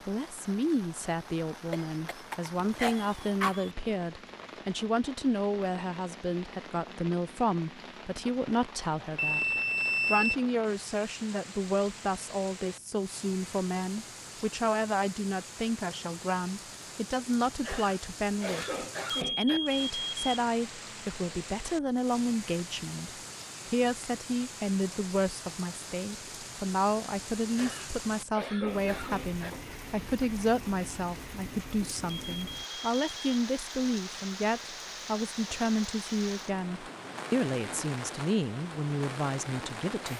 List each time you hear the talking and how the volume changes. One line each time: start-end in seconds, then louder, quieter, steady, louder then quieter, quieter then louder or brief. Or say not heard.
0.1-9.4 steady
10.1-40.1 steady.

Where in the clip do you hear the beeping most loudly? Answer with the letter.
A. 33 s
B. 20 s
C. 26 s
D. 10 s
D.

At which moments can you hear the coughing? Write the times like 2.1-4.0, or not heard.
1.7-3.7, 17.6-19.6, 27.6-29.5.